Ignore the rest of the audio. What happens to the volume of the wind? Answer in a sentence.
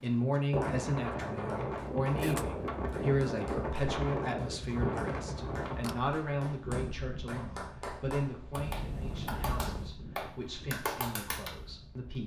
The loudness of the wind goes down.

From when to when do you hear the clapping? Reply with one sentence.
You can hear the clapping from 0.1 to 11.6 s.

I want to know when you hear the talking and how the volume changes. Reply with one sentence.
You can hear the talking from 0.0 to 12.2 s, getting quieter.